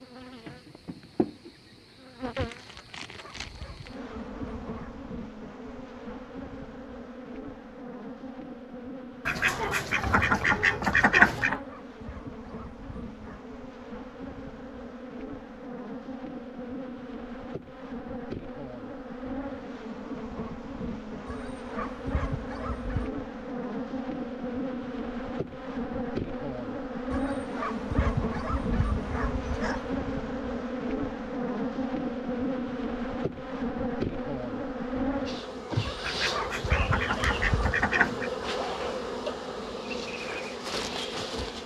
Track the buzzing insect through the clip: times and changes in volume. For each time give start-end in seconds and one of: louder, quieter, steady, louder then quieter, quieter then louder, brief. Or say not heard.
0.0-41.6 louder.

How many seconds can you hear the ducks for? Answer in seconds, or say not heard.
5 s.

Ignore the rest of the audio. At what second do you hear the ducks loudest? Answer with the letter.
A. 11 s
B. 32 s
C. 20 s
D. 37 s
A.